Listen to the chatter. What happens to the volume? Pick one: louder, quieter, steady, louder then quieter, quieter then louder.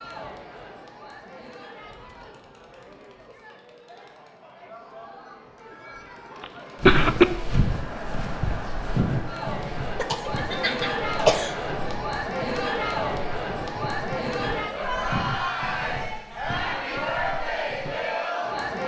louder.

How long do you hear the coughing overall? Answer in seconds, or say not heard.
3 s.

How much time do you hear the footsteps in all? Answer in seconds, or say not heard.
11 s.